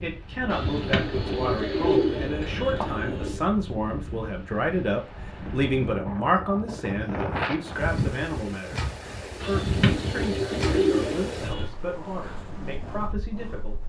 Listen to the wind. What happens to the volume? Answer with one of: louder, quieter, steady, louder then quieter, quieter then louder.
louder then quieter.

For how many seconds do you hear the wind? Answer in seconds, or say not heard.
14 s.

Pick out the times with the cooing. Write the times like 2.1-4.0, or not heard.
0.5-3.4, 9.4-11.7.